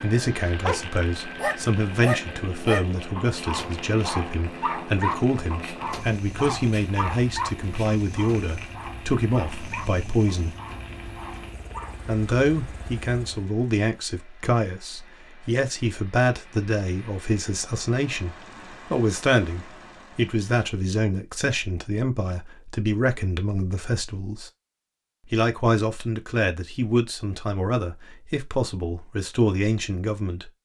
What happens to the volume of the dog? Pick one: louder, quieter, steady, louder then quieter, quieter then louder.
quieter.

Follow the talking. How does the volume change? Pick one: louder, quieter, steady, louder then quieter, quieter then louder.
steady.